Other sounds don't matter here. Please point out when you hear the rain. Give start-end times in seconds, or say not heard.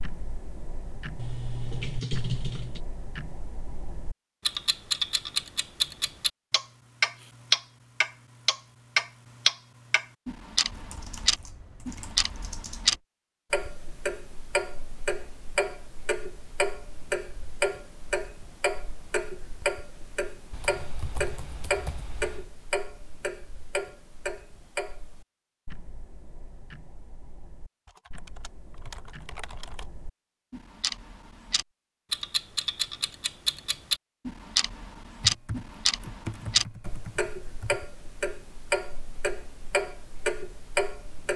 not heard.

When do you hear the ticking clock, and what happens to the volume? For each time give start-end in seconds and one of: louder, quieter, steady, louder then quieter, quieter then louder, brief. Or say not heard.
0.0-41.3 quieter then louder.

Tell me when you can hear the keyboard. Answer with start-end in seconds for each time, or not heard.
1.1-2.8, 10.7-13.0, 20.5-22.5, 27.9-29.9, 35.2-37.8.